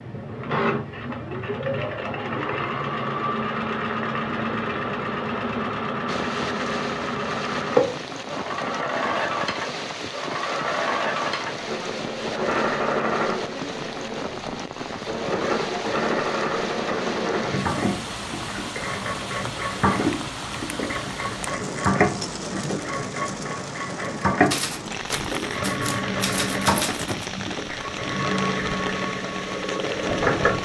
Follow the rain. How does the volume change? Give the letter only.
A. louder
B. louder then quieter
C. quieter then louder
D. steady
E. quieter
D.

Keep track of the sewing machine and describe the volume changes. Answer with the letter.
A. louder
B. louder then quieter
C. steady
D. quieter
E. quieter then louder
C.